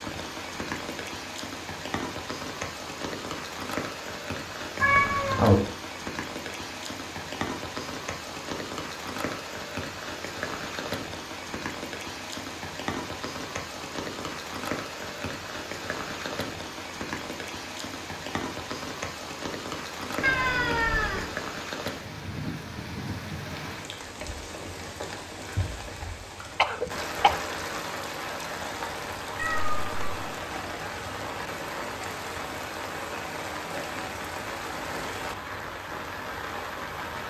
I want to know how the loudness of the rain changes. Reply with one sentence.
The loudness of the rain stays about the same.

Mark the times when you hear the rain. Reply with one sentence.
The rain can be heard from 0.0 to 37.2 s.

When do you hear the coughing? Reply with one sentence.
The coughing can be heard from 26.6 to 27.4 s.